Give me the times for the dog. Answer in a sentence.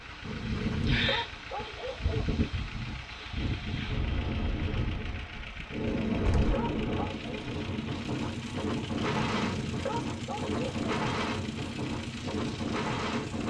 The dog can be heard from 0.2 to 2.2 s, from 5.7 to 7.2 s and from 9.0 to 10.9 s.